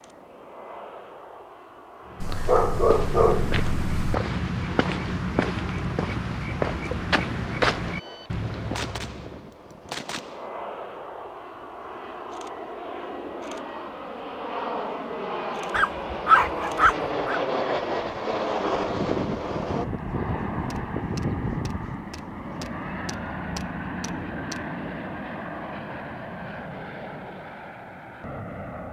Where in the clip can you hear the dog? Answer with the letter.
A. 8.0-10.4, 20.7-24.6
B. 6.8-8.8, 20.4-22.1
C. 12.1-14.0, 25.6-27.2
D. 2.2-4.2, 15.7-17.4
D.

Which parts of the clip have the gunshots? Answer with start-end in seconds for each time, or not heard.
8.0-10.4, 20.7-24.6.